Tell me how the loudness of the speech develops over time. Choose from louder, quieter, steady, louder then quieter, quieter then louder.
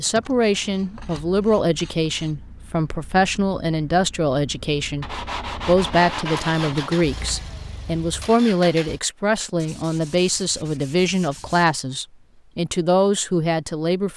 steady.